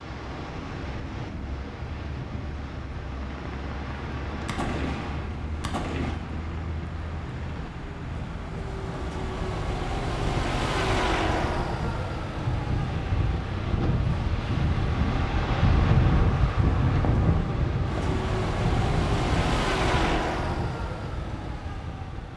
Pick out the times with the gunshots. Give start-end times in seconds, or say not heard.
4.5-6.2.